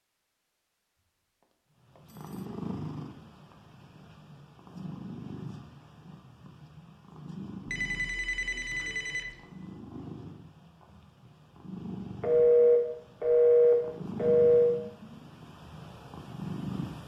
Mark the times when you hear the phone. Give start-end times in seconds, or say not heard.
1.4-2.5, 7.7-9.3, 12.2-14.8.